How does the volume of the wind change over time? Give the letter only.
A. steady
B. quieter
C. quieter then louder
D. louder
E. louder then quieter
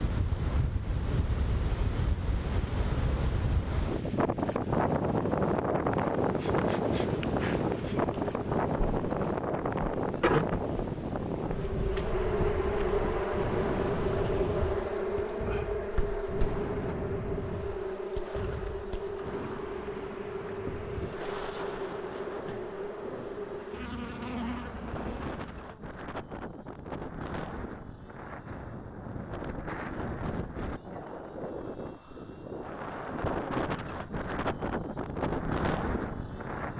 C.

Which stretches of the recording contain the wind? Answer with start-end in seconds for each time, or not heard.
0.0-36.7.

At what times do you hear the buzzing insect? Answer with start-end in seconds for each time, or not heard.
6.2-25.8.